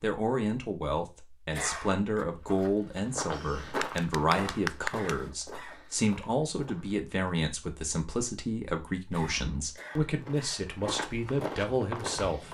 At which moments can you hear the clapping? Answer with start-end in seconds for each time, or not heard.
3.8-5.3.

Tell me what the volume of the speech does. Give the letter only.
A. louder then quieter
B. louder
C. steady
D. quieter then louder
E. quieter
C.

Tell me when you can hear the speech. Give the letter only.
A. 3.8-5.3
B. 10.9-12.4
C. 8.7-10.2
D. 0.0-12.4
D.